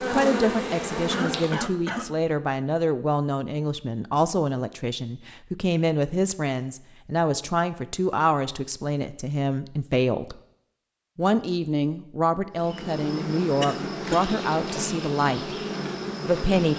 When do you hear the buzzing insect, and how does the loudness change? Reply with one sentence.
The buzzing insect can be heard briefly from 0.0 to 1.8 s; and from 12.5 to 16.7 s, at a steady volume.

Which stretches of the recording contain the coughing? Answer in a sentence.
The coughing can be heard from 1.1 to 2.1 s and from 13.6 to 14.3 s.